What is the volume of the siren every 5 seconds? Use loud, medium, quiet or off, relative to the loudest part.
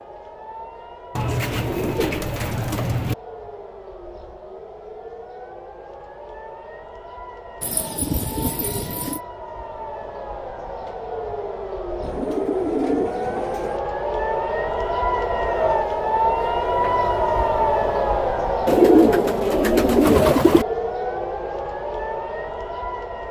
quiet, quiet, medium, loud, medium.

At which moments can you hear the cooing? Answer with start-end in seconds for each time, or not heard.
1.1-3.1, 7.6-9.2, 12.0-13.8, 18.6-20.6.